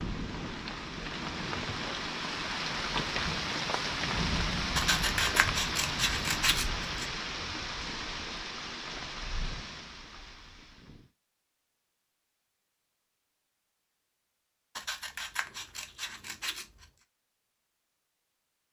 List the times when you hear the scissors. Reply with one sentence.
You can hear the scissors from 4.8 to 7.0 s and from 14.8 to 16.9 s.